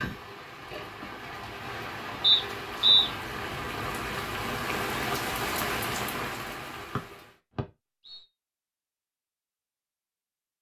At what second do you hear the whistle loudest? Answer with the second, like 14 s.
3 s.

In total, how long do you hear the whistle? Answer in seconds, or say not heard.
2 s.